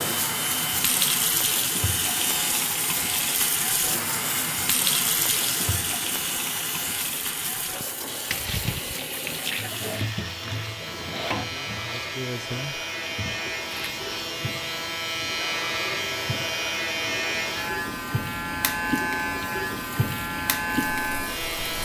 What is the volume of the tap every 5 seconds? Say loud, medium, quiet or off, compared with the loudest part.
loud, loud, medium, medium, medium.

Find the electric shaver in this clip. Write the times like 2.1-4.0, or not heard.
0.0-21.7.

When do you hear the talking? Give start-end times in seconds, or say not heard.
10.4-12.8.